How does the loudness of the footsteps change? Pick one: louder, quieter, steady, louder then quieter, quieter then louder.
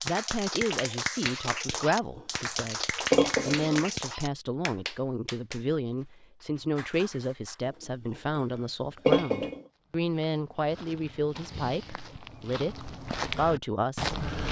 louder.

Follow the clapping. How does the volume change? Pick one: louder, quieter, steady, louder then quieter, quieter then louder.
quieter.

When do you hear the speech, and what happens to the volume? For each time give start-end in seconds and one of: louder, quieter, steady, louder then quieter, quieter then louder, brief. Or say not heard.
0.0-14.2 steady.